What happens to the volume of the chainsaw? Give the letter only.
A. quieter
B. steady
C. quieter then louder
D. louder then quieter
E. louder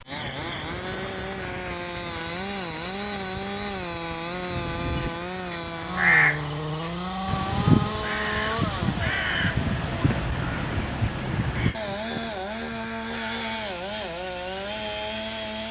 B.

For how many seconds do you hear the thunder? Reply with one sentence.
The thunder can be heard for 2 seconds in total.